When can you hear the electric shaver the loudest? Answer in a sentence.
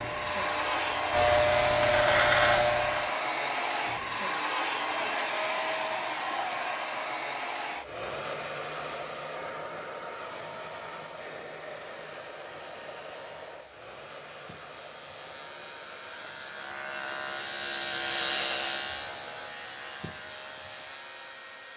The loudest moment of the electric shaver is at 2 seconds.